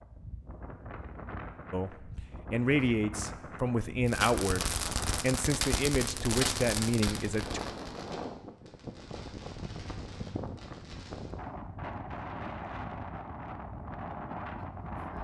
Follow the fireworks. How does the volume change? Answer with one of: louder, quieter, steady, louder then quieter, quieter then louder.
quieter.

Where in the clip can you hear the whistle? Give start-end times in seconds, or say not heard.
not heard.